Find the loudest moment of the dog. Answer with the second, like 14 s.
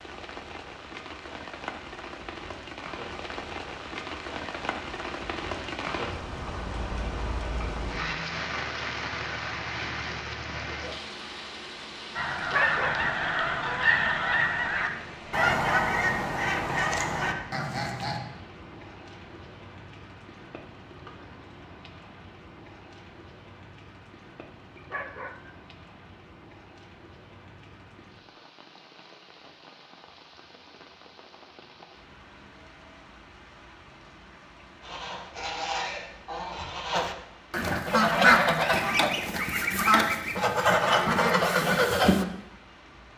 13 s.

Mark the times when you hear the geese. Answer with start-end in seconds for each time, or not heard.
12.2-18.2, 34.8-42.2.